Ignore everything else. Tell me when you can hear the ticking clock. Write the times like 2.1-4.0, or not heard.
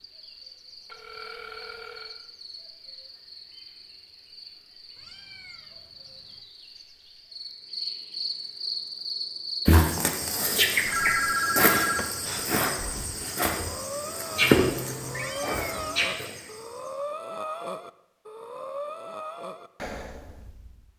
not heard.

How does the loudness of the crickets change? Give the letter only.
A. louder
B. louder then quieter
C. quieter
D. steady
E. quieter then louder
A.